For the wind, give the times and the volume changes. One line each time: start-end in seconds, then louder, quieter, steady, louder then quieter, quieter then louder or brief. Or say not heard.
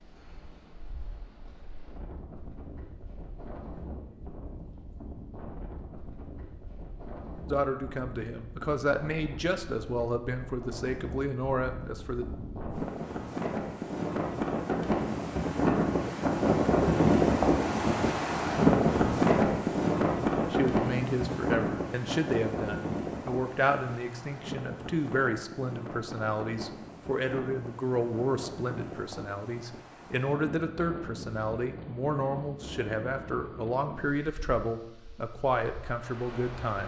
0.0-36.8 louder then quieter.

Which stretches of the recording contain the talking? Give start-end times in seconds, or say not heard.
7.5-12.2, 20.5-36.8.